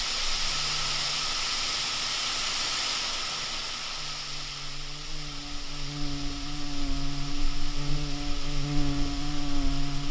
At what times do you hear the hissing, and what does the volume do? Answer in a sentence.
The hissing can be heard from 0.0 to 10.0 s, getting quieter.